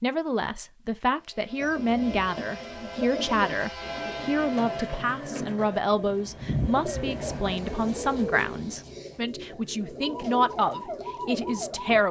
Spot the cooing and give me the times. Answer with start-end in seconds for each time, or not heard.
1.6-12.0.